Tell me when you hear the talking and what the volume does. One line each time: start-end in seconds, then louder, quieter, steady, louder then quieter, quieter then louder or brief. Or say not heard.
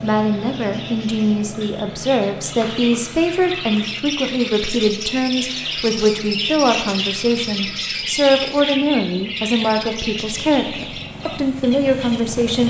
0.0-12.6 steady.